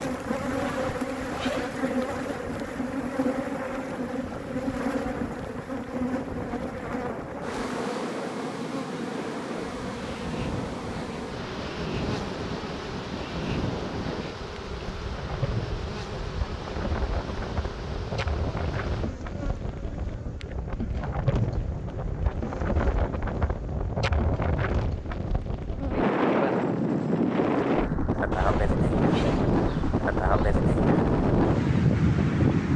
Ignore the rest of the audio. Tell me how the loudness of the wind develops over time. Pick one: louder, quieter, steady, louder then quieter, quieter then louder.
louder.